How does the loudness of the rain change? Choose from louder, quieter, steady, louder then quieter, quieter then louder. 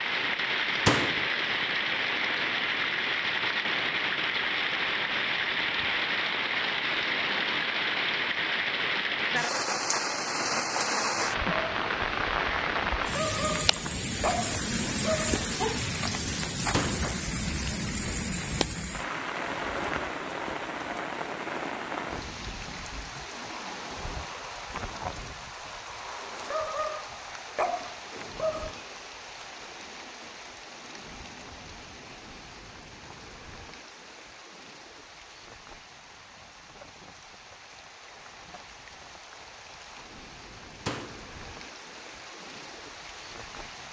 quieter.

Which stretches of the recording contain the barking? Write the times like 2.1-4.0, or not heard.
13.0-15.8, 26.4-28.8.